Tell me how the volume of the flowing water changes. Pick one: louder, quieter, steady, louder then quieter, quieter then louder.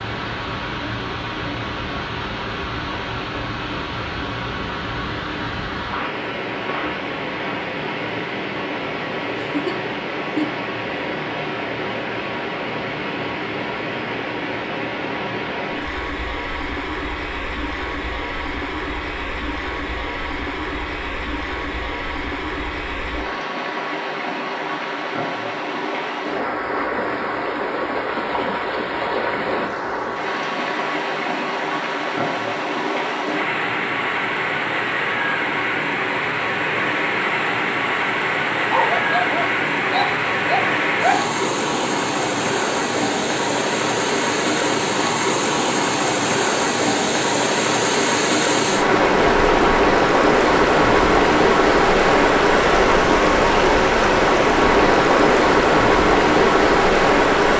louder.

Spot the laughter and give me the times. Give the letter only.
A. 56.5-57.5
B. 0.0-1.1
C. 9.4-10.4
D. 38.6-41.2
C.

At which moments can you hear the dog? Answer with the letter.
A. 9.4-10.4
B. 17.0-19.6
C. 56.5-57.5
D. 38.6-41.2
D.